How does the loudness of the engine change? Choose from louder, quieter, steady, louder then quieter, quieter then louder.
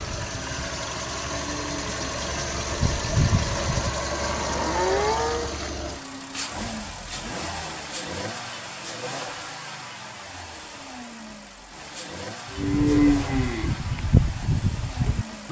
quieter.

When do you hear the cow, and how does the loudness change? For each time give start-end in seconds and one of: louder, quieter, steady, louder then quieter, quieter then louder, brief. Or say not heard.
0.0-5.5 louder
12.5-15.4 brief.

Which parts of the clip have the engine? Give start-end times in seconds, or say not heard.
0.0-15.4.